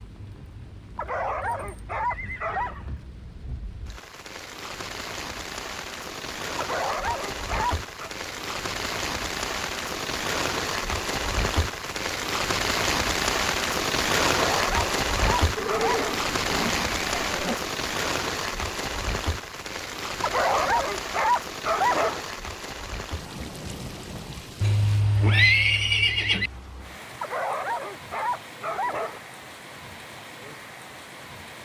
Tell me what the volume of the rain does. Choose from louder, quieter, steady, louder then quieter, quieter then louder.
louder then quieter.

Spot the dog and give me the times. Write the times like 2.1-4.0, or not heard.
0.9-2.8, 6.5-8.1, 14.2-16.1, 20.2-22.2, 27.2-29.2.